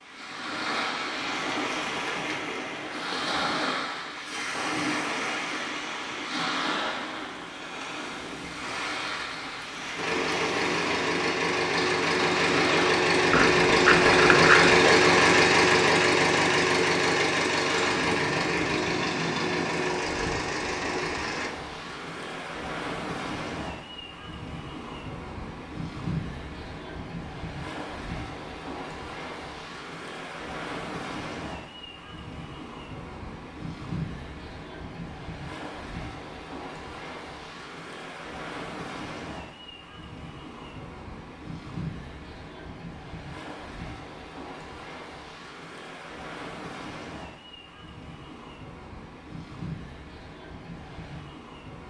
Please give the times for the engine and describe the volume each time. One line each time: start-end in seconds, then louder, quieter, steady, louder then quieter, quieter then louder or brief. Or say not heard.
9.9-21.5 louder then quieter.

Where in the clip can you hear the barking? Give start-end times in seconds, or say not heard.
13.3-14.9.